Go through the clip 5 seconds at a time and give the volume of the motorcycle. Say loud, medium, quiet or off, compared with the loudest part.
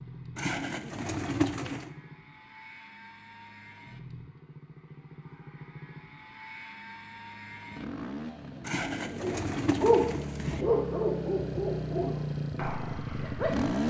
quiet, medium, loud.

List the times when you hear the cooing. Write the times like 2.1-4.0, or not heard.
0.3-1.9, 8.6-10.7.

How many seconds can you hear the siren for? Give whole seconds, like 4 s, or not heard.
not heard.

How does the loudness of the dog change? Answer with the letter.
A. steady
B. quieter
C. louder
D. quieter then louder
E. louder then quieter
B.